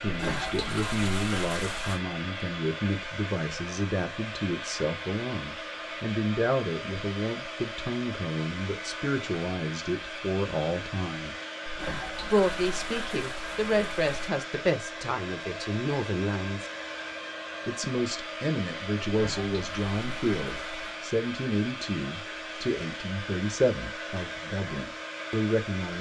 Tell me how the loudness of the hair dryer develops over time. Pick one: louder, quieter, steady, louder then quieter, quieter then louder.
steady.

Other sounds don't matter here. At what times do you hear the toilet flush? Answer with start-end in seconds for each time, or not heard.
0.1-2.0, 11.7-14.3, 19.1-20.9.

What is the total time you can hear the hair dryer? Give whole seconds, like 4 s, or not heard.
26 s.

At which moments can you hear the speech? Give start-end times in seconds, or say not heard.
0.0-11.3, 12.3-16.7, 17.6-25.9.